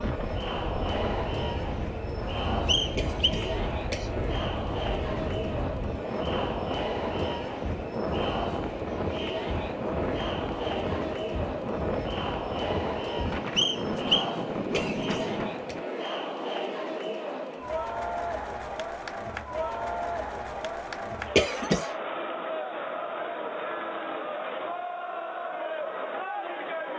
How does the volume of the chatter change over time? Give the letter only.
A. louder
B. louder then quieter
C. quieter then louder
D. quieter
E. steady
E.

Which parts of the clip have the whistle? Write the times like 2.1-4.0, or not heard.
2.6-3.3, 13.6-14.9.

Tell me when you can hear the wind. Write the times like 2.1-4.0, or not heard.
0.0-15.8.